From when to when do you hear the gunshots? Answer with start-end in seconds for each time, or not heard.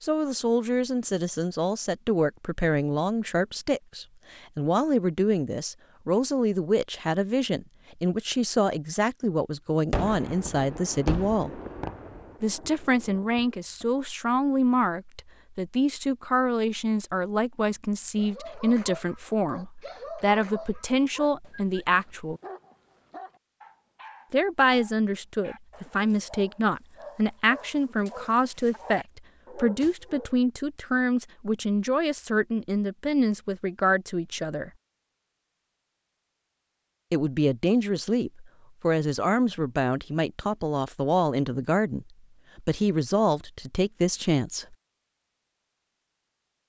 9.9-13.8.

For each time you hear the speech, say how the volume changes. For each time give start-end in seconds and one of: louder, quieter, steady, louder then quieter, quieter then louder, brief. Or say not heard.
0.0-11.6 steady
12.4-22.4 steady
24.3-34.7 steady
37.1-44.8 steady.